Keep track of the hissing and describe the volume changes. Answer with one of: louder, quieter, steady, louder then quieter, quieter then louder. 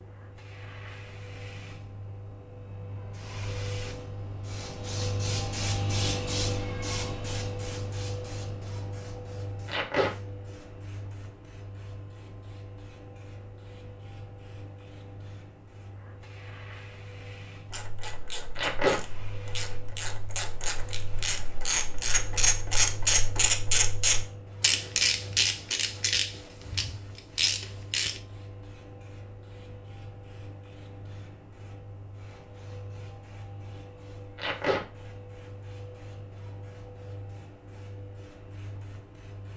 quieter.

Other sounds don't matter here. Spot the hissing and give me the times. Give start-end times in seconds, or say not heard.
0.0-39.5.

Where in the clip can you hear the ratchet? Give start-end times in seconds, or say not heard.
17.7-28.2.